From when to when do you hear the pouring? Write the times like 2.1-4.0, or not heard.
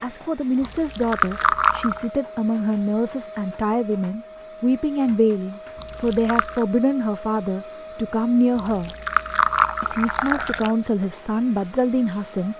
0.6-2.0, 5.8-6.7, 8.6-10.8.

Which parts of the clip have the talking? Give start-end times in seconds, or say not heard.
0.0-8.9, 9.8-12.5.